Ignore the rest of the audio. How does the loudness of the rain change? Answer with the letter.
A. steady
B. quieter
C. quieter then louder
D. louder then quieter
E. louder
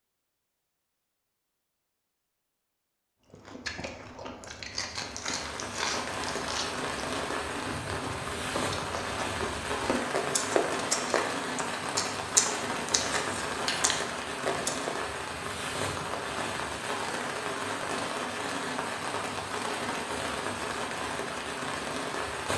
A.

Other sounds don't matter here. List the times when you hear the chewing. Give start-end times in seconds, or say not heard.
3.3-14.9.